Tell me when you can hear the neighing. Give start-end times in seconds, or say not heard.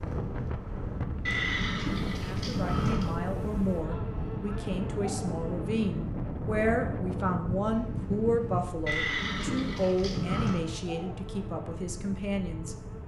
1.2-3.1, 8.8-10.6.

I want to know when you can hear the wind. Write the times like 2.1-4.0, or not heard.
0.0-8.8.